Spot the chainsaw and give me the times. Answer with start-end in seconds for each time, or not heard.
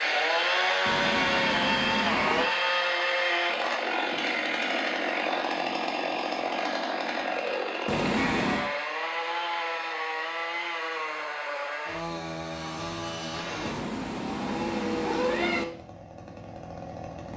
0.0-17.3.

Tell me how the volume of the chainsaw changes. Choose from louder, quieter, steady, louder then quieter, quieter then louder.
quieter.